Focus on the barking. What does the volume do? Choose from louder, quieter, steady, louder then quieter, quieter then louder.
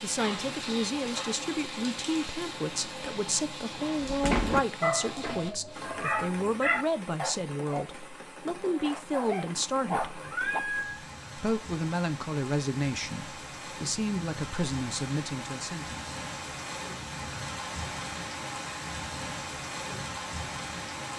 quieter then louder.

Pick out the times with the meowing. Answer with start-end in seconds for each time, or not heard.
10.1-11.1.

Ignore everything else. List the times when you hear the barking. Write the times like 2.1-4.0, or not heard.
4.0-10.6.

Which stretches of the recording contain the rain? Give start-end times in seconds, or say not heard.
0.0-21.1.